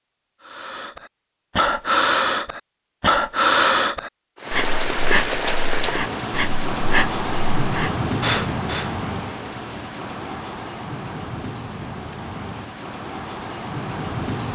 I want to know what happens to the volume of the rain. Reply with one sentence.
The loudness of the rain goes down.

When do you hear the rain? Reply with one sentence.
You can hear the rain from 4.3 to 14.4 s.